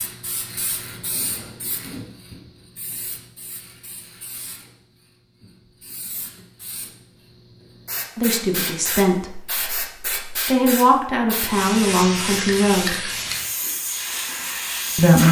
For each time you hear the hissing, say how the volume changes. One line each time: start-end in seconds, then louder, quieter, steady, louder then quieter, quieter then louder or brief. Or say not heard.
0.0-15.2 quieter then louder.